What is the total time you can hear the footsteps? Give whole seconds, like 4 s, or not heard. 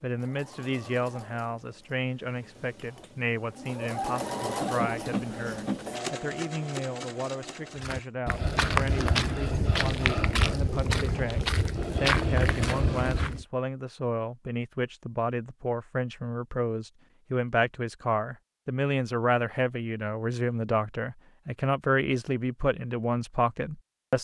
6 s.